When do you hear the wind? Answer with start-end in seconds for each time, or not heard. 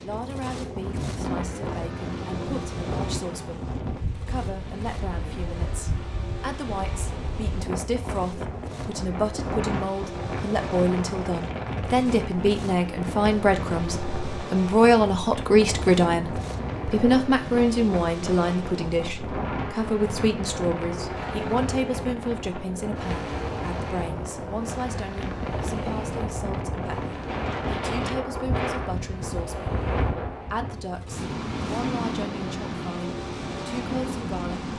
0.0-34.7.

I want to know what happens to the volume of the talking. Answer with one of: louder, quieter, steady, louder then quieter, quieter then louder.
louder then quieter.